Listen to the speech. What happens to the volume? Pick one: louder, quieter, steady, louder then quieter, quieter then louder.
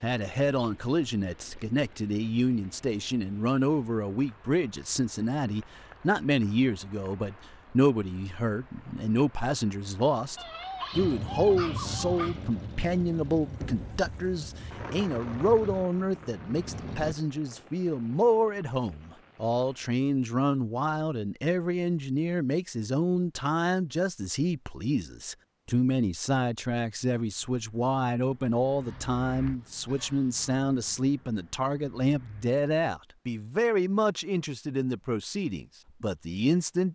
steady.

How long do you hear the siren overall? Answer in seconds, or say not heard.
not heard.